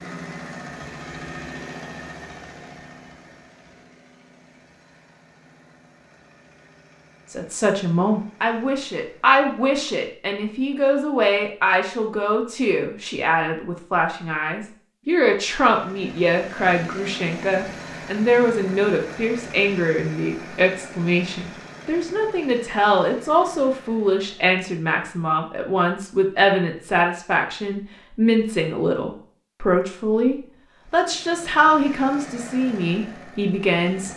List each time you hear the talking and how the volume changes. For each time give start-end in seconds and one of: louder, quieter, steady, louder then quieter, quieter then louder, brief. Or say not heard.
7.3-34.1 steady.